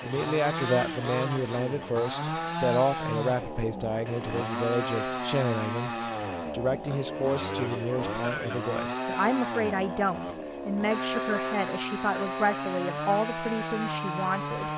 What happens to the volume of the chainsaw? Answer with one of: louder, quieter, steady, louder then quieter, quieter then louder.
steady.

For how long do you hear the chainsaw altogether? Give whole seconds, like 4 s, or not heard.
15 s.